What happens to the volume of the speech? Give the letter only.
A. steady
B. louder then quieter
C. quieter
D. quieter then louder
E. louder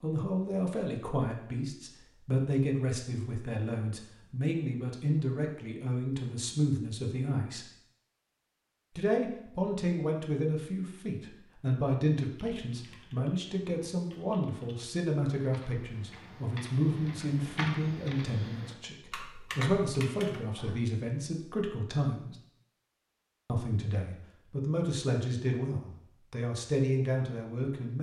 A.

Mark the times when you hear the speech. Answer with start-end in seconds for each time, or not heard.
0.0-7.7, 8.9-22.4, 23.4-27.9.